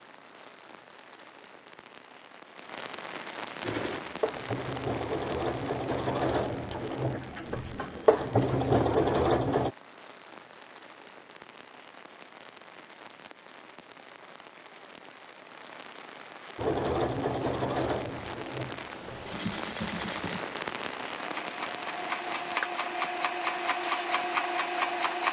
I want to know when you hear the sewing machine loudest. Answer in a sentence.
The loudest moment of the sewing machine is at 9 seconds.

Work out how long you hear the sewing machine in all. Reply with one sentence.
You can hear the sewing machine for 15 seconds altogether.